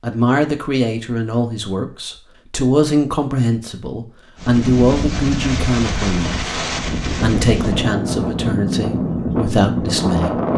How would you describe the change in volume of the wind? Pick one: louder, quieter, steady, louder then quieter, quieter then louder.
steady.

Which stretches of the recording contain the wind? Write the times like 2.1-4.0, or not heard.
4.3-10.5.